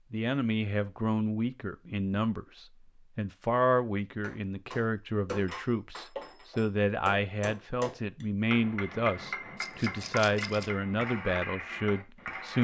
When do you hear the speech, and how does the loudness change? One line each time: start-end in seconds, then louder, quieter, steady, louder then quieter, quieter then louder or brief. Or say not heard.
0.1-12.5 steady.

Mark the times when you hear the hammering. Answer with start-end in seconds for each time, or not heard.
4.2-12.5.